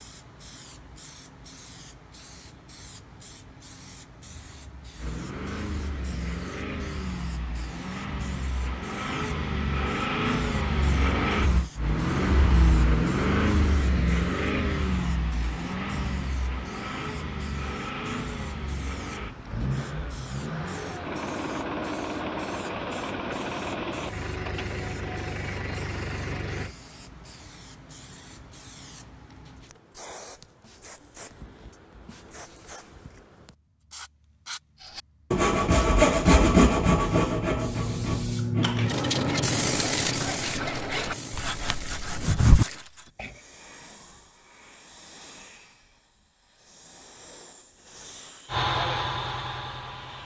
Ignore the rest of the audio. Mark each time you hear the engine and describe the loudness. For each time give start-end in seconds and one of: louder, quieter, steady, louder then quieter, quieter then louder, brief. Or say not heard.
5.0-26.8 louder then quieter
48.5-50.2 brief.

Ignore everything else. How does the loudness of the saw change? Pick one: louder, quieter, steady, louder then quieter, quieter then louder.
quieter then louder.